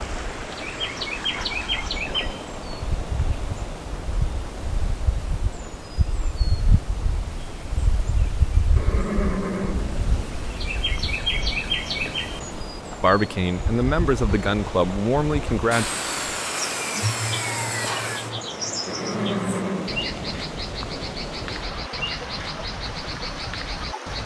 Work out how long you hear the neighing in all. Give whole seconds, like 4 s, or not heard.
3 s.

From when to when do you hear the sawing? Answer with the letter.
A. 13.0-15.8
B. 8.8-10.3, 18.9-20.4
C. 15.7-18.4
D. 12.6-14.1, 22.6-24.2
C.